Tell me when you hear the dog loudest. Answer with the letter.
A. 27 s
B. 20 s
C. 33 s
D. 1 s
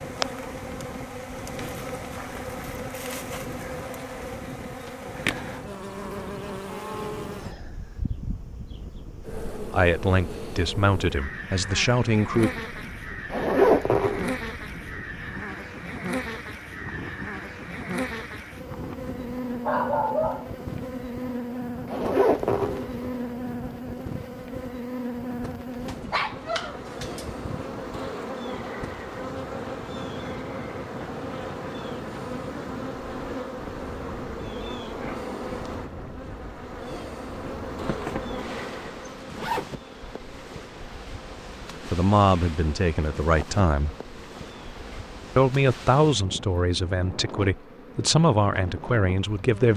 B.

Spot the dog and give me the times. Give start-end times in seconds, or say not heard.
19.6-20.6, 25.9-27.2.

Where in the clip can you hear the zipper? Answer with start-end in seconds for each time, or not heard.
13.3-14.3, 21.9-23.1, 37.8-39.6.